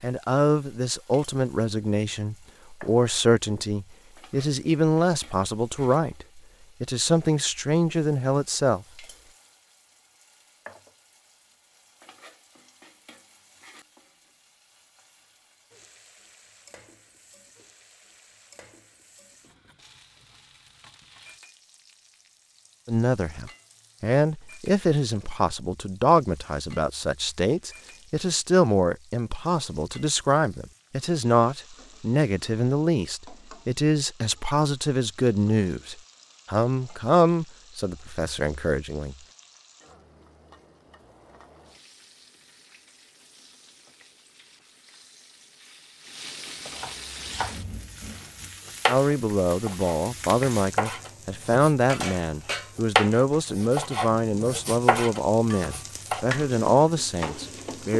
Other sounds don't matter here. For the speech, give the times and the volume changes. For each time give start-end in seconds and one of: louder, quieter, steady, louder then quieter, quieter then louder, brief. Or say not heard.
0.0-8.8 steady
22.9-39.1 steady
48.9-57.9 steady.